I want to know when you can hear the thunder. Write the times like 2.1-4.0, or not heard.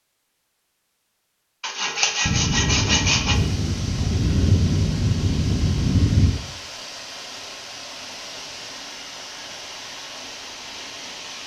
2.2-6.4.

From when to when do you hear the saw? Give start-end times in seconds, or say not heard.
1.6-3.4.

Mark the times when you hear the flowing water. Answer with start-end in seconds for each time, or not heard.
3.3-11.4.